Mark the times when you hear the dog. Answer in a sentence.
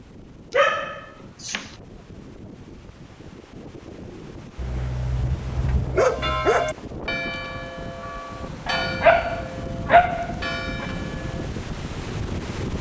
The dog can be heard from 0.5 to 1.7 s, from 4.5 to 6.7 s and from 8.7 to 10.8 s.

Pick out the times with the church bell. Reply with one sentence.
You can hear the church bell from 6.0 to 11.5 s.